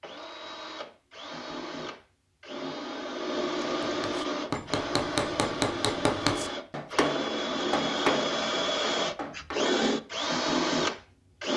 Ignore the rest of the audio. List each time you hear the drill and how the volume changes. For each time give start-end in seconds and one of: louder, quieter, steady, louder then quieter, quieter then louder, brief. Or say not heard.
0.0-11.5 louder.